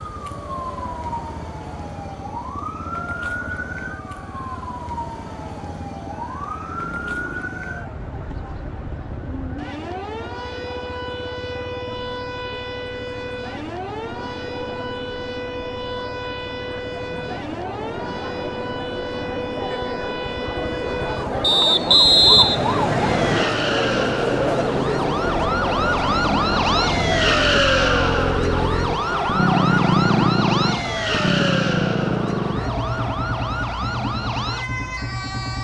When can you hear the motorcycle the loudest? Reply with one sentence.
The loudest moment of the motorcycle is at 30 seconds.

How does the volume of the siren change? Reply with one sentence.
The volume of the siren goes up.